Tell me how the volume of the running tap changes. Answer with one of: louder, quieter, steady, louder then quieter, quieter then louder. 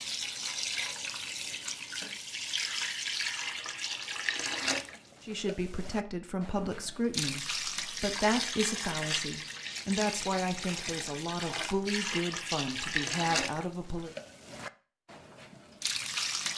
steady.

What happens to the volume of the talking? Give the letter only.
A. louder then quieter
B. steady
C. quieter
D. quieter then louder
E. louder
B.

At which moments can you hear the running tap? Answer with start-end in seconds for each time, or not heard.
0.0-16.5.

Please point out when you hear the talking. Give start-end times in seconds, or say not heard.
5.2-14.1.